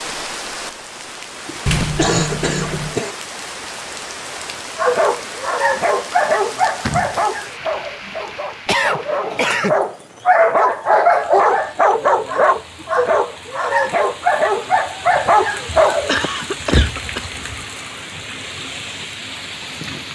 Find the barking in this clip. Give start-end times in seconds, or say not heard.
4.8-16.1.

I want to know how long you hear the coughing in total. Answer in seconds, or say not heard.
4 s.